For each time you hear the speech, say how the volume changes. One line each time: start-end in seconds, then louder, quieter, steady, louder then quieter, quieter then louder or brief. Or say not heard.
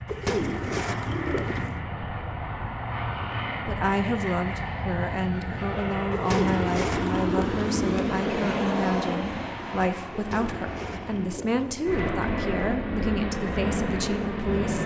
3.6-14.8 steady.